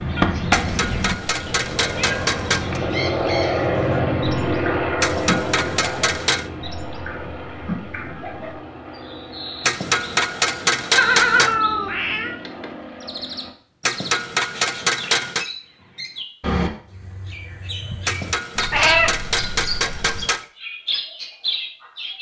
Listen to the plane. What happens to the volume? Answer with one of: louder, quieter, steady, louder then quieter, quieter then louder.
quieter.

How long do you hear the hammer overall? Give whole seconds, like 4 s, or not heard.
10 s.